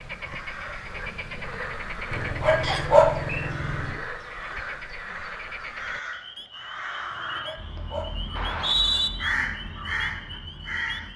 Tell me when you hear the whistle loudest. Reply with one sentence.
The loudest moment of the whistle is at 9 seconds.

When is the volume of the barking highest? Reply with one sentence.
The volume of the barking peaks at 3 seconds.